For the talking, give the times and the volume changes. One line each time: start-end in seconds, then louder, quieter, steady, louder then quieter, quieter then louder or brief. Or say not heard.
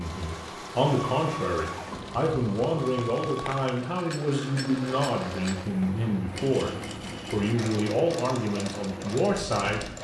0.0-9.8 steady.